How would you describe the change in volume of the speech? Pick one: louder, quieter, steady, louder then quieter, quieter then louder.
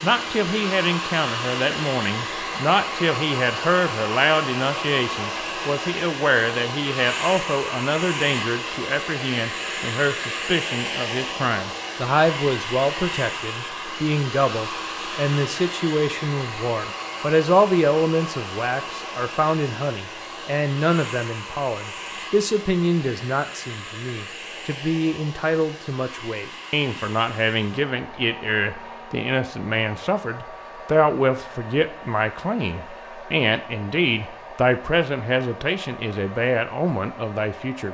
steady.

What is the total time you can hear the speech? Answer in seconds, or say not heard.
38 s.